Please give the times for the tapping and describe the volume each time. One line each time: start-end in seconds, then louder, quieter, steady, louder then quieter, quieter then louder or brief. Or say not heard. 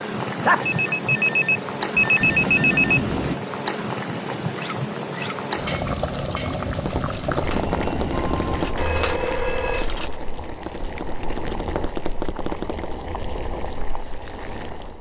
6.8-13.0 quieter then louder.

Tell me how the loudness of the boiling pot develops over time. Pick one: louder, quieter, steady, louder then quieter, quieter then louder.
quieter.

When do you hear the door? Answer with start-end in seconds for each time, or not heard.
2.2-3.4, 7.5-8.8.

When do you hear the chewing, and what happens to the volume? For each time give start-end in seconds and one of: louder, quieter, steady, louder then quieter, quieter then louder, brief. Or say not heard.
not heard.